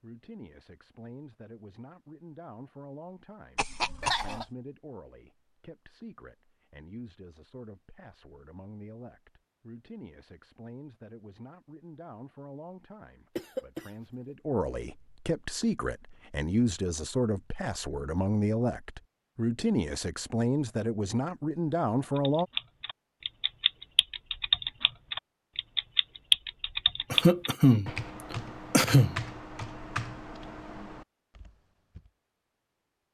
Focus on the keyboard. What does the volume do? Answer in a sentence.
The volume of the keyboard goes up, then down.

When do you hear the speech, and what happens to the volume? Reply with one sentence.
You can hear the speech from 0.0 to 22.4 s, getting louder.